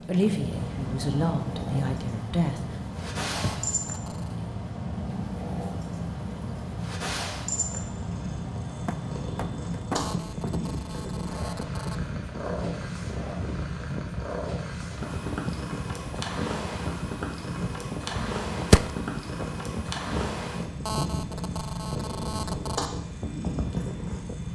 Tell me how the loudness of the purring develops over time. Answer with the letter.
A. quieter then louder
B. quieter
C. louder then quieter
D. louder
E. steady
E.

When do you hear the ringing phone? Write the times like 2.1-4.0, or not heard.
3.4-4.4, 9.9-12.0, 20.8-22.9.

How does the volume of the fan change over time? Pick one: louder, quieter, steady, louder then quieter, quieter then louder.
steady.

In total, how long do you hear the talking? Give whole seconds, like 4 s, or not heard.
3 s.